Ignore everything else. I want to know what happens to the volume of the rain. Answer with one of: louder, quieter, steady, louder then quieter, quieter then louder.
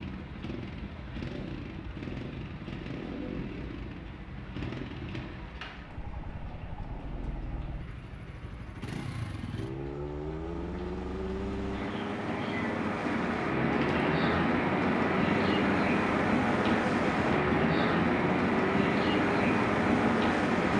louder.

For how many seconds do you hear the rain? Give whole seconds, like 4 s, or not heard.
21 s.